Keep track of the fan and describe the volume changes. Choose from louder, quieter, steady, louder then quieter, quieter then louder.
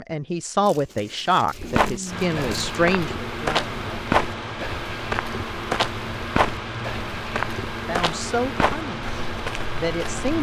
steady.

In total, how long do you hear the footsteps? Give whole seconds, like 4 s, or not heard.
9 s.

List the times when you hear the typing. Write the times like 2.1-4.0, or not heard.
not heard.